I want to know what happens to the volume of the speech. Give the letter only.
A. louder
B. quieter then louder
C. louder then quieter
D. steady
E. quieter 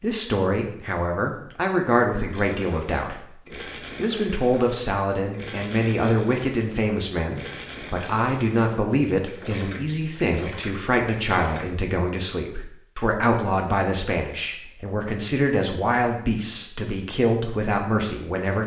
D.